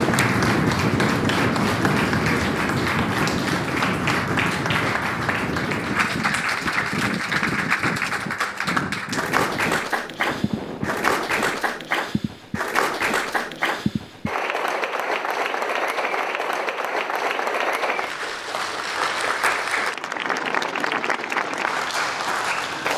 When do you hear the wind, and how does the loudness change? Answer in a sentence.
The wind can be heard from 0.0 to 11.6 s, getting quieter.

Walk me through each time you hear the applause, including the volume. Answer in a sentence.
The applause can be heard from 0.0 to 22.9 s, at a steady volume.